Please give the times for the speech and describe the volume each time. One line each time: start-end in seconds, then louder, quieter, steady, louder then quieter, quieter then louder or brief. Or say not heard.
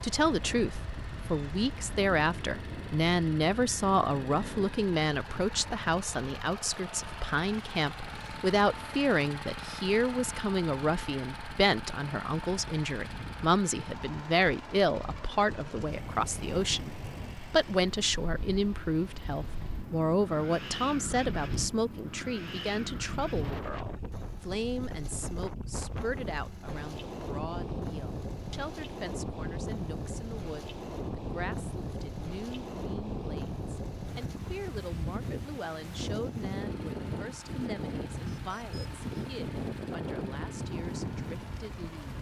0.0-42.1 quieter.